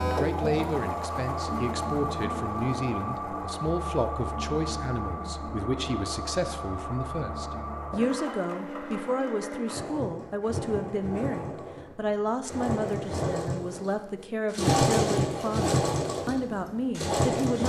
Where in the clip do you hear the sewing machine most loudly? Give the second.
15 s.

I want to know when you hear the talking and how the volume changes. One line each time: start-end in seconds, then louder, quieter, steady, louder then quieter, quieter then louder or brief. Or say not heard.
0.0-17.6 steady.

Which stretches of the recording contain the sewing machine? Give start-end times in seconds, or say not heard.
0.0-17.6.